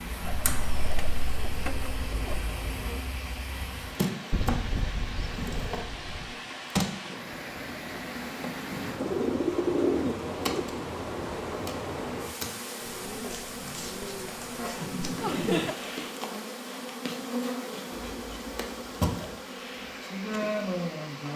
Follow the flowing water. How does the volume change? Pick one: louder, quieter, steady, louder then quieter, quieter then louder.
louder then quieter.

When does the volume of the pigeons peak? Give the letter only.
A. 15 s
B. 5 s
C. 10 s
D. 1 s
C.